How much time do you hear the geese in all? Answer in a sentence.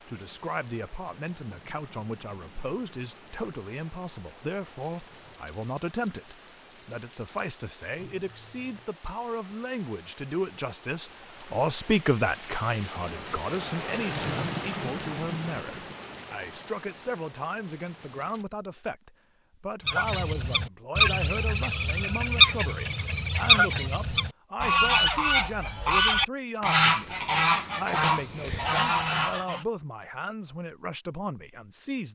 You can hear the geese for 10 seconds altogether.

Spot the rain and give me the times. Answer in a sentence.
The rain can be heard from 0.0 to 18.4 s.